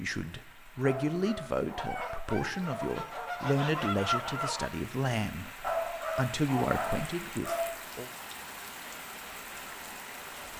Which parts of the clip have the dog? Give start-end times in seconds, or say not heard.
0.8-3.4, 5.6-7.7.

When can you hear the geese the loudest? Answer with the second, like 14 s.
4 s.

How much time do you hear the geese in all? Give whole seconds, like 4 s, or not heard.
3 s.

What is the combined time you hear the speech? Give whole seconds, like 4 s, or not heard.
8 s.